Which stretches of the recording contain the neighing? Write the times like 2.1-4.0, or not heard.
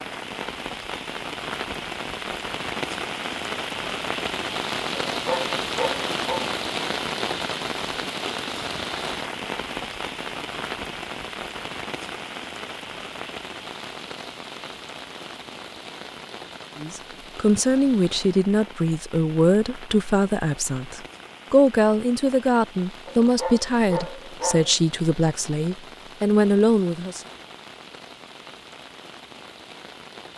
not heard.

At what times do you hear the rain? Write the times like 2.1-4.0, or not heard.
0.0-30.3.